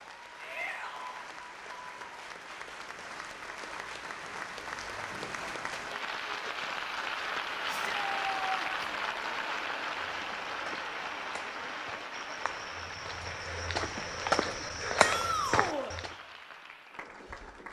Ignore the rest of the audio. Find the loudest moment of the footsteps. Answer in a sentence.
The loudest moment of the footsteps is at 15 seconds.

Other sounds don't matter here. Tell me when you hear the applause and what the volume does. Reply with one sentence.
You can hear the applause from 0.0 to 17.6 s, getting louder then quieter.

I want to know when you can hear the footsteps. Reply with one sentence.
The footsteps can be heard from 10.2 to 16.1 s.